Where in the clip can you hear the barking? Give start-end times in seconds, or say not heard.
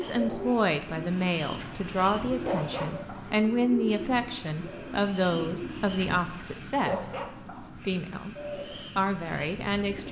1.6-3.3, 6.0-7.7.